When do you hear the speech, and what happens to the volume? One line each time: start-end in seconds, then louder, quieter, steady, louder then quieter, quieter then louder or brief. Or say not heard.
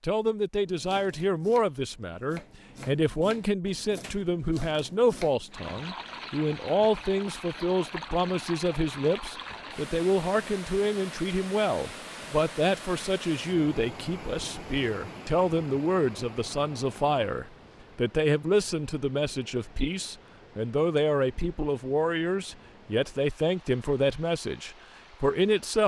0.0-25.8 steady.